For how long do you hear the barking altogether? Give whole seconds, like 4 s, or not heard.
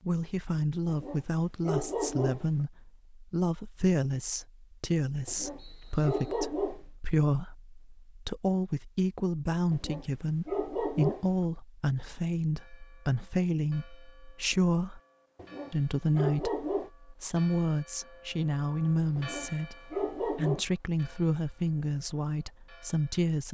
8 s.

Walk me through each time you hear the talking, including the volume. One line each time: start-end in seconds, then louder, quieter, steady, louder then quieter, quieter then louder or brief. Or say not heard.
0.0-15.0 steady
15.7-23.4 steady.